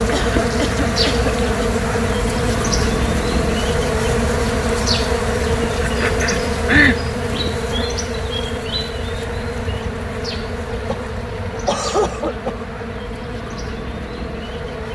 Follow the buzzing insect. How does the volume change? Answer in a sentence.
The loudness of the buzzing insect goes down.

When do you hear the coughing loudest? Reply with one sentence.
The volume of the coughing peaks at 7 seconds.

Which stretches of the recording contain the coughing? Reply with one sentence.
You can hear the coughing from 0.1 to 1.8 s, from 5.8 to 7.0 s and from 10.8 to 12.7 s.